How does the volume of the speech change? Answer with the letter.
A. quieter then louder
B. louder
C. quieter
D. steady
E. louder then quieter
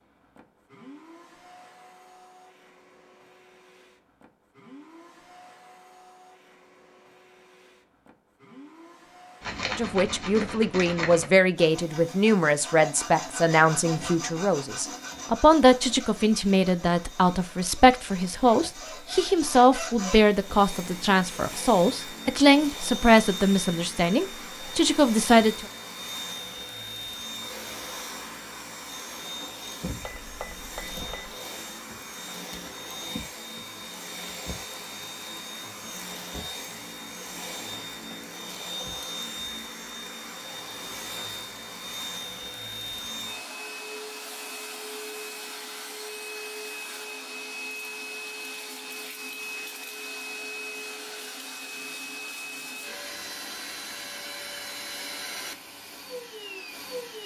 D.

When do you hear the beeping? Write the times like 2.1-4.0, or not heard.
30.0-31.4.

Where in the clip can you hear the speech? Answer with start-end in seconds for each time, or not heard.
9.7-25.6.